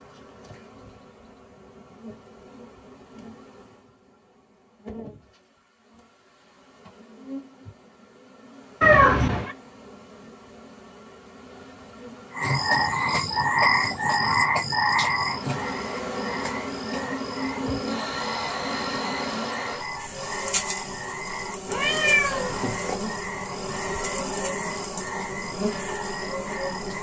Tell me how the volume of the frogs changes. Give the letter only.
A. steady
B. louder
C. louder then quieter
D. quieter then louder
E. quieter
E.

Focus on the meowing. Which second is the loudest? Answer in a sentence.
The volume of the meowing peaks at 9 seconds.